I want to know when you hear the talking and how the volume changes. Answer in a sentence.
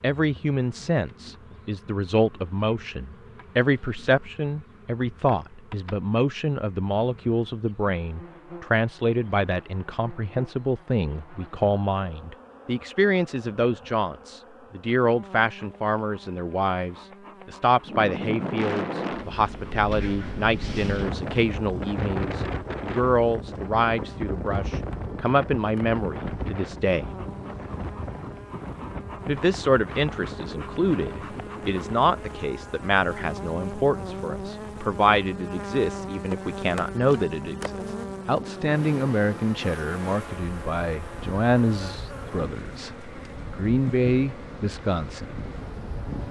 You can hear the talking from 0.0 to 27.1 s, at a steady volume; and from 29.2 to 45.4 s, at a steady volume.